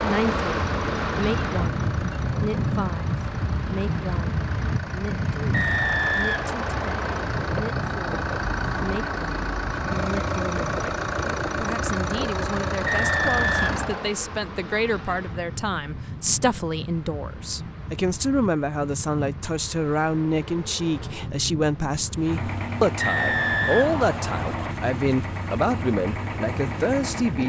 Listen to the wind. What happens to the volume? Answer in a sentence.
The volume of the wind goes down.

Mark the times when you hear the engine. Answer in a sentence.
You can hear the engine from 0.0 to 14.0 s and from 22.1 to 27.4 s.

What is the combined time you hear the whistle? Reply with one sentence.
The whistle can be heard for 5 seconds in total.